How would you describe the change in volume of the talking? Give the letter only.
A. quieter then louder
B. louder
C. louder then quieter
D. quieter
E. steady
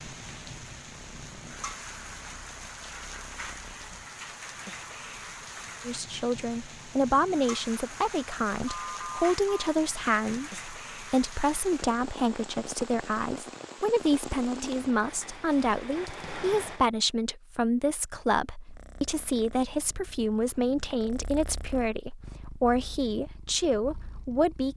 E.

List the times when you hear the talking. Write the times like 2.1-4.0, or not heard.
5.8-24.7.